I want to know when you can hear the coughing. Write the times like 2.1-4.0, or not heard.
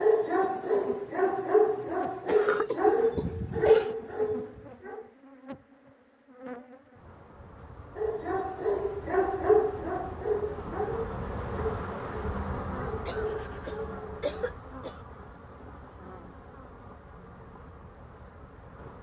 2.2-4.0, 13.1-15.0.